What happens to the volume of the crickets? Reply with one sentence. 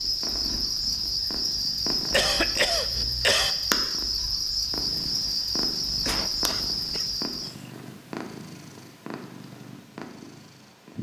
The volume of the crickets stays about the same.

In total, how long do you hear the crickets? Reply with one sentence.
The crickets can be heard for 8 seconds in total.